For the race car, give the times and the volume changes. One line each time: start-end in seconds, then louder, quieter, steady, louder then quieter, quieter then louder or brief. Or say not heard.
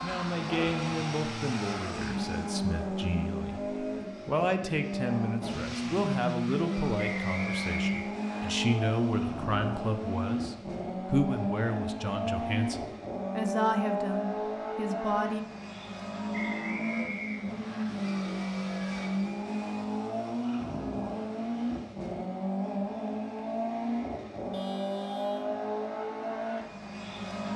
0.0-27.5 steady.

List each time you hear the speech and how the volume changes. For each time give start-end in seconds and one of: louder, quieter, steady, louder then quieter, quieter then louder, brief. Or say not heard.
0.0-15.4 steady.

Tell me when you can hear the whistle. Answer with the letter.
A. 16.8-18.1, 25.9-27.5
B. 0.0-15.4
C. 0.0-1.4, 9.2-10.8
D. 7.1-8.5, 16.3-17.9
D.